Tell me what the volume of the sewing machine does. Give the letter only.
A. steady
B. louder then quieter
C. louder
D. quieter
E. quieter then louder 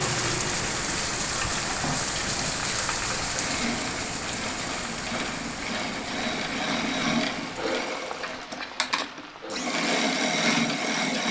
C.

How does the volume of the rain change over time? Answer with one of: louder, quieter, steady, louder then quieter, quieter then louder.
quieter.